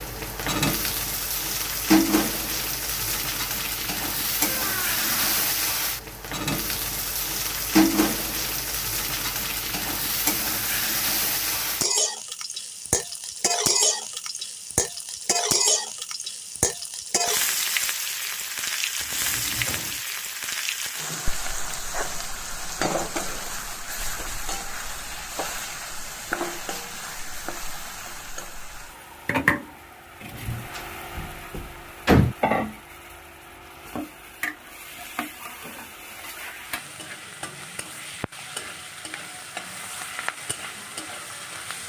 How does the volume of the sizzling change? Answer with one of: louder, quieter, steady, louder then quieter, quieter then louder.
quieter.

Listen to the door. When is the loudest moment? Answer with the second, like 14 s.
32 s.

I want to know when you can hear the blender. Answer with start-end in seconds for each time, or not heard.
not heard.